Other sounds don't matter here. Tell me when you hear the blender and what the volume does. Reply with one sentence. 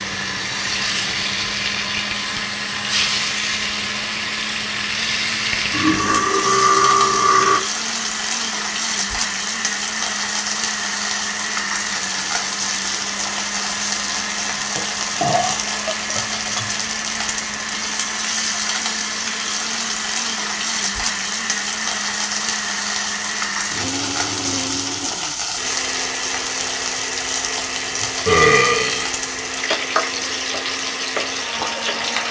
The blender can be heard from 0.0 to 32.2 s, at a steady volume.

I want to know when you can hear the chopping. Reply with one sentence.
You can't hear the chopping here.